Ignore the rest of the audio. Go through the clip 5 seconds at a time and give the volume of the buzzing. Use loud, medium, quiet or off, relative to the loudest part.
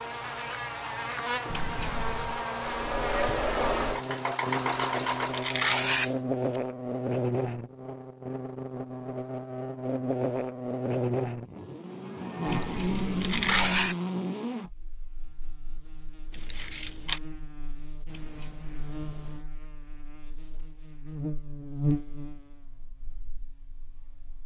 loud, loud, loud, quiet, medium.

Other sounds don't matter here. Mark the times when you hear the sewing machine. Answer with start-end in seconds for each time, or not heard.
2.6-5.6.